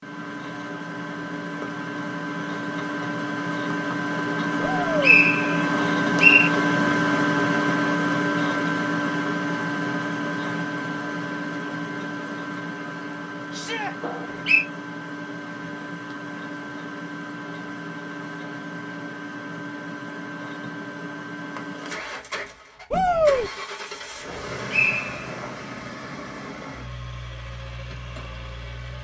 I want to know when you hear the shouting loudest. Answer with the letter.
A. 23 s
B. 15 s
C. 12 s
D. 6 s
A.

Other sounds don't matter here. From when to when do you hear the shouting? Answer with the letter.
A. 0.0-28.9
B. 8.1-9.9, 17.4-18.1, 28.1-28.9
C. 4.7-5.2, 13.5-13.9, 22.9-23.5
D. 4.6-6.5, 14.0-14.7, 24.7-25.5
C.